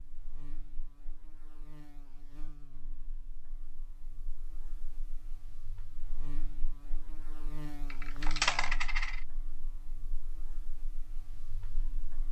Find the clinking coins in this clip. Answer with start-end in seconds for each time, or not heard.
7.9-9.2.